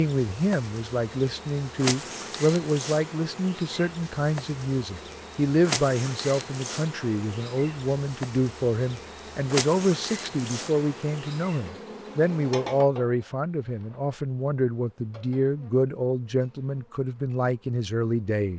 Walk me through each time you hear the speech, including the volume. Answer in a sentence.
You can hear the speech from 0.0 to 18.5 s, at a steady volume.